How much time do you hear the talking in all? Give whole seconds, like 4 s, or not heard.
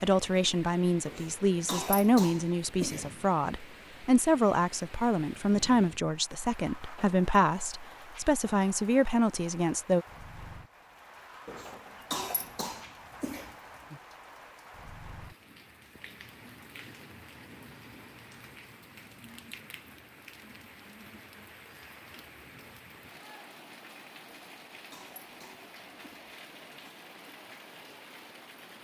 10 s.